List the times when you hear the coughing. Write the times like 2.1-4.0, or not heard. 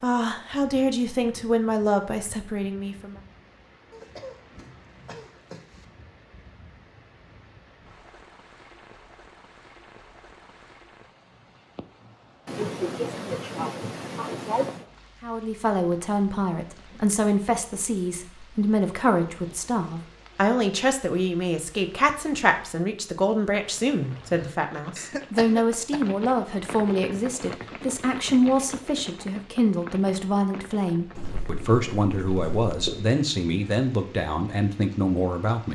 3.9-5.8, 12.4-14.8, 24.9-26.0.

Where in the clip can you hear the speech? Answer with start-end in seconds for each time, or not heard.
0.0-3.1, 15.2-35.7.